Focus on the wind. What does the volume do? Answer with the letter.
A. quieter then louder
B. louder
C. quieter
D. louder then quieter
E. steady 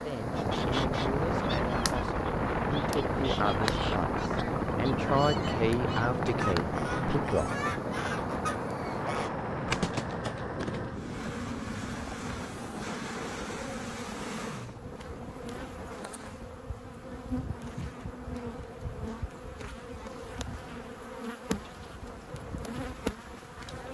C.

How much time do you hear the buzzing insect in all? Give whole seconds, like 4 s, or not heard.
24 s.